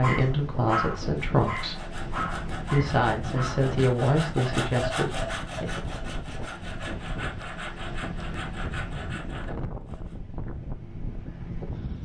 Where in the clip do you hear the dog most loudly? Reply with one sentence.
The volume of the dog peaks at 1 second.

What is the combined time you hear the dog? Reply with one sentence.
You can hear the dog for 4 seconds altogether.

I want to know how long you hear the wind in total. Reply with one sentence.
You can hear the wind for 12 seconds altogether.